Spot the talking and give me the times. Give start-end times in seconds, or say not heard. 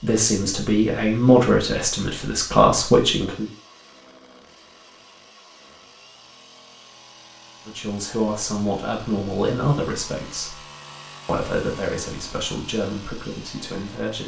0.0-3.5, 7.7-10.6, 11.2-14.2.